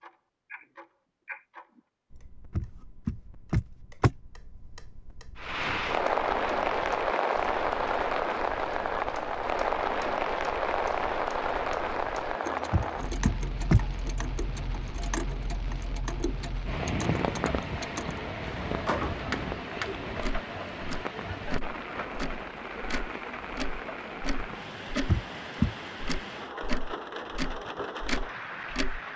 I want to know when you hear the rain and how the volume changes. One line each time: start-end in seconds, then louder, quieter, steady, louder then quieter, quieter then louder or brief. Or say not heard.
5.3-29.1 quieter.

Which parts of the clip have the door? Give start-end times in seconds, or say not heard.
2.5-4.2, 12.7-13.8, 25.1-25.8.